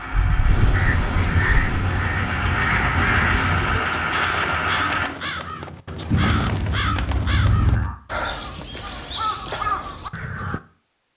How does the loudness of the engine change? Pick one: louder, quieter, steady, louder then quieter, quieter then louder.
louder.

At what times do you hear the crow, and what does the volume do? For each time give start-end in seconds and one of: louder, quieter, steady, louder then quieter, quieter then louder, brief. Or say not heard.
0.7-10.6 steady.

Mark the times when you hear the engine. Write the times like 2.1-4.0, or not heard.
0.0-5.1.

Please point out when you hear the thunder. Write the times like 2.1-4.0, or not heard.
0.5-3.8.